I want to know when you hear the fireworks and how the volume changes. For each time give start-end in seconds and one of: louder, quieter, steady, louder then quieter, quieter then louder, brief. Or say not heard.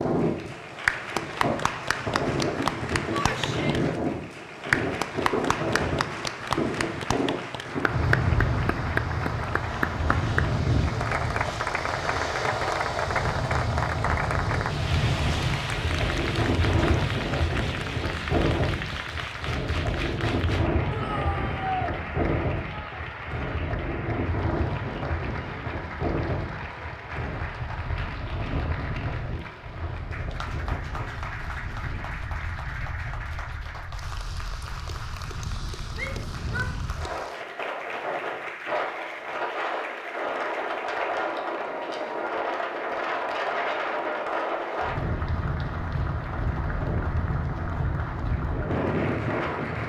not heard.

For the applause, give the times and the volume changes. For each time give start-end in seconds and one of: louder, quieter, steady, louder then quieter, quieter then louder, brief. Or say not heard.
0.0-49.8 quieter.